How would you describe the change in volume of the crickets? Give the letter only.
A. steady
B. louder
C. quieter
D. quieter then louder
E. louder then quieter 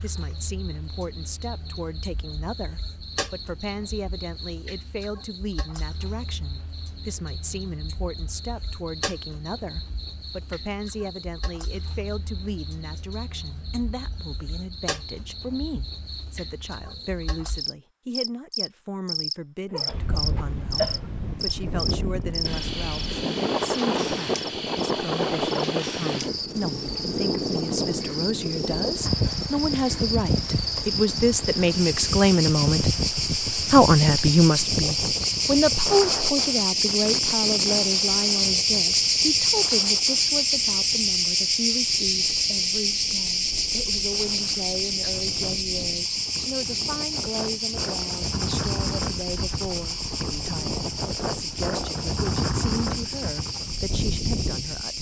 E.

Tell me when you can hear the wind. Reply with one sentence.
You can hear the wind from 19.9 to 54.9 s.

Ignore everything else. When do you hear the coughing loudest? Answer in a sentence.
The loudest moment of the coughing is at 21 seconds.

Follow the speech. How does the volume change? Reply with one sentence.
The volume of the speech goes up, then down.